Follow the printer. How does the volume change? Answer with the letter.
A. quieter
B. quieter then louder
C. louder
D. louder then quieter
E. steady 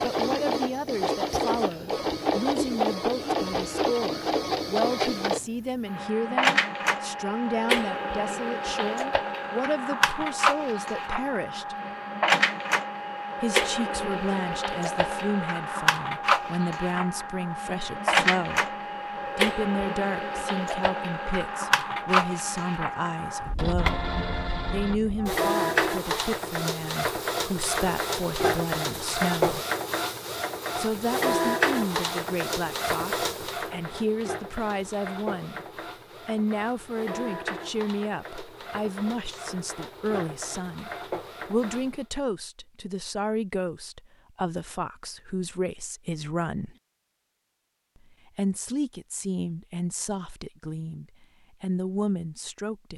A.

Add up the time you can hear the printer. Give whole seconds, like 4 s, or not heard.
42 s.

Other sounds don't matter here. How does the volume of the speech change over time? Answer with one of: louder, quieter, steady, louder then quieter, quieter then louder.
steady.